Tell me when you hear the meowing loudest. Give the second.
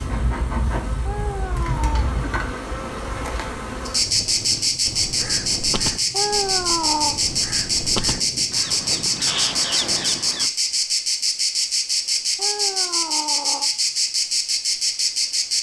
7 s.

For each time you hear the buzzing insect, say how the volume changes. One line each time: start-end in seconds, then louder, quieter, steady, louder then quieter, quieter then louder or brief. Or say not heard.
0.0-15.5 louder.